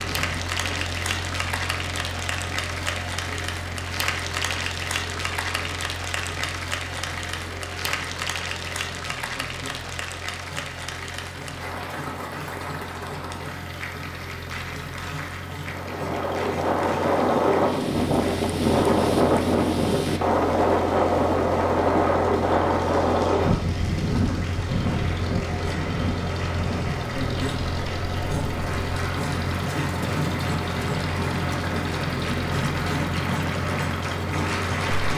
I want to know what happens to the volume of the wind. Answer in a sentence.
The loudness of the wind goes down.